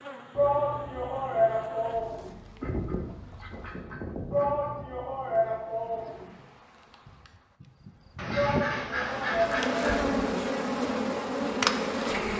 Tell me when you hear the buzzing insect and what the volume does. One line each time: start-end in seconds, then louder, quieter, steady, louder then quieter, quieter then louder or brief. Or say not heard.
0.0-12.3 quieter then louder.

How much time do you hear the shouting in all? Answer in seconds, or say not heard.
6 s.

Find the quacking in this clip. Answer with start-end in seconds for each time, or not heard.
2.6-4.7, 8.2-10.1.